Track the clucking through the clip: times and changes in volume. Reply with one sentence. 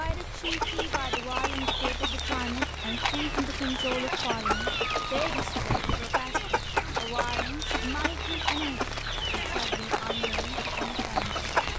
The clucking can be heard from 0.4 to 11.7 s, at a steady volume.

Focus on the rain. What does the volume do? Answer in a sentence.
The loudness of the rain stays about the same.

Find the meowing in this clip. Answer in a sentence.
The meowing can be heard from 4.4 to 6.0 s.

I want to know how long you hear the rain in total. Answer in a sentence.
The rain can be heard for 12 seconds in total.